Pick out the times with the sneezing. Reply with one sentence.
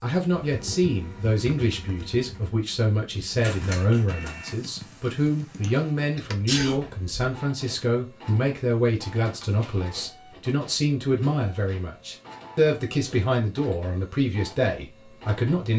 The sneezing can be heard from 6.2 to 7.3 s.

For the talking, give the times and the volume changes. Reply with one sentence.
You can hear the talking from 0.0 to 15.7 s, at a steady volume.